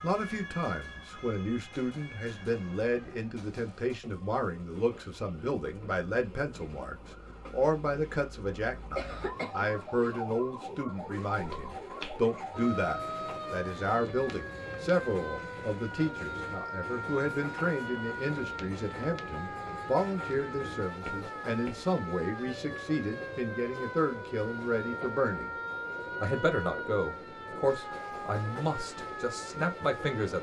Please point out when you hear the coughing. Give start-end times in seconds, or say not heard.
8.9-10.2.